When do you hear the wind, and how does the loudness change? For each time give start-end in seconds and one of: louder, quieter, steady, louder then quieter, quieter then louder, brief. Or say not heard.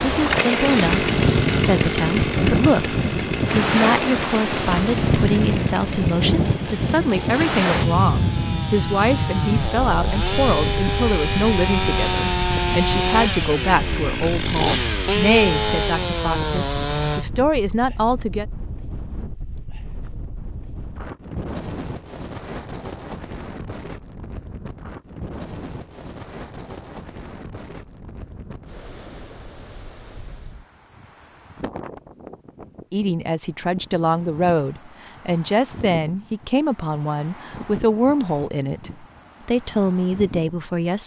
0.0-41.0 quieter.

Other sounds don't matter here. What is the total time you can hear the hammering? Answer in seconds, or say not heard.
not heard.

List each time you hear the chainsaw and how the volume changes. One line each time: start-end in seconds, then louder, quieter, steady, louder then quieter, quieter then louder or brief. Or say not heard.
0.1-17.2 quieter then louder.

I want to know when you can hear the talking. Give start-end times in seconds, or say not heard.
0.0-18.4, 32.9-41.0.